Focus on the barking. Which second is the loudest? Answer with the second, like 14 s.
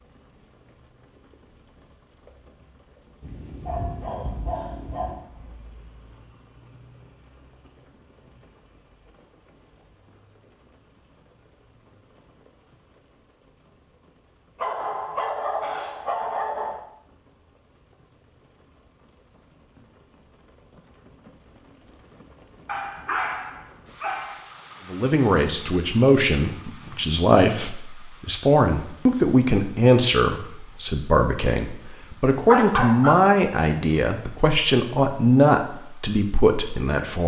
33 s.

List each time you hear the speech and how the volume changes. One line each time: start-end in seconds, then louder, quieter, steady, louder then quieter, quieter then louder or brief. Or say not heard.
24.9-37.2 steady.